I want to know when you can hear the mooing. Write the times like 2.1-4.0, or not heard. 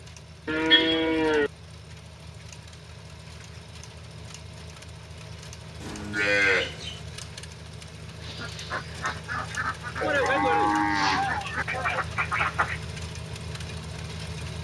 0.5-1.5, 5.8-7.0, 10.0-12.0.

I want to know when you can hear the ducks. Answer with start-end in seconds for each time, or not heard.
8.2-12.8.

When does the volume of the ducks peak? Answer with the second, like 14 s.
12 s.